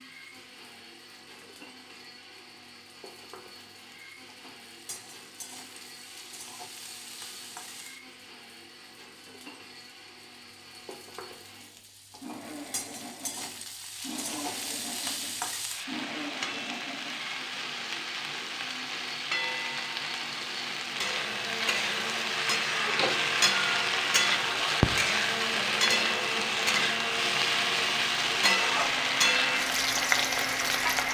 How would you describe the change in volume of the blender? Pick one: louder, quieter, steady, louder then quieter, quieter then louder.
louder.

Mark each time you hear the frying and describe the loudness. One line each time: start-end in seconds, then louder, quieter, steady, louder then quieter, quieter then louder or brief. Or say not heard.
0.0-31.0 louder.